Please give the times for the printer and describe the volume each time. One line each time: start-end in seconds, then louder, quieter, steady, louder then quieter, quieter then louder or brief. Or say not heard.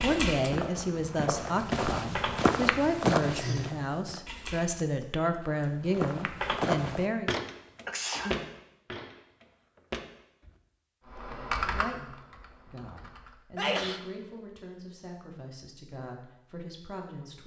not heard.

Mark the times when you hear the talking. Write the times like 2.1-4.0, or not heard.
0.0-7.3, 11.7-17.4.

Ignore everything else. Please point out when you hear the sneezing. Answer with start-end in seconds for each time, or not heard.
3.2-3.8, 7.8-8.4, 13.6-14.0.